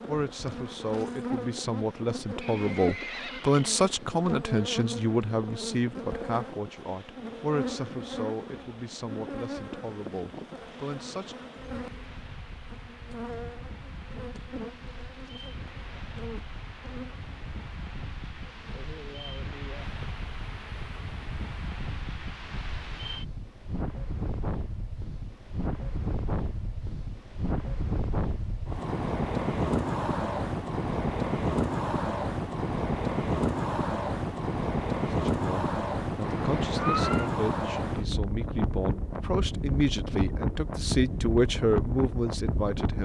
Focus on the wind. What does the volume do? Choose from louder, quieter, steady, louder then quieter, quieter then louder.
louder.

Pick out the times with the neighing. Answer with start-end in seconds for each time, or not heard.
2.4-3.9, 36.2-37.3.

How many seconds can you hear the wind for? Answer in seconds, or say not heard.
43 s.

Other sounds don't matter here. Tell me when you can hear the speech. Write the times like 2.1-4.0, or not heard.
0.1-11.6, 35.1-43.0.